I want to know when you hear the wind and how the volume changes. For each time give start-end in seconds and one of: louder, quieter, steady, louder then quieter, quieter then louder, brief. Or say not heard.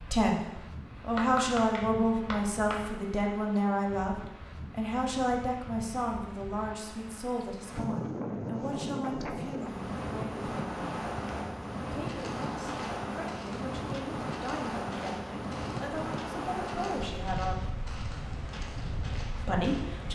0.0-20.0 louder.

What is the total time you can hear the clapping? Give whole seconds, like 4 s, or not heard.
2 s.